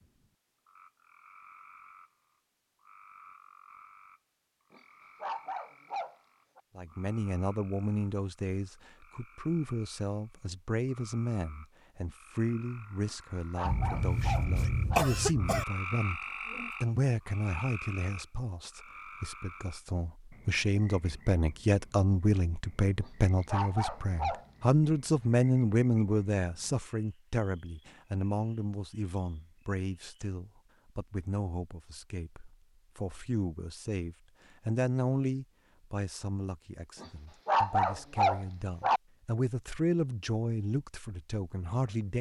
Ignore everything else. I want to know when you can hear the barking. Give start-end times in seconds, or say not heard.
4.7-6.6, 13.1-15.1, 23.0-24.4, 37.0-39.0.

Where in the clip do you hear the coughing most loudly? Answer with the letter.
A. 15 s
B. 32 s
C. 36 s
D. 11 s
A.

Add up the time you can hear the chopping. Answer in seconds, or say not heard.
not heard.